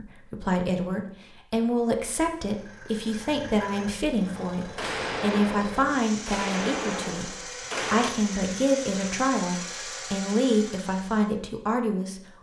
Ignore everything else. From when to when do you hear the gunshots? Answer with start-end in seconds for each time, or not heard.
4.5-8.1.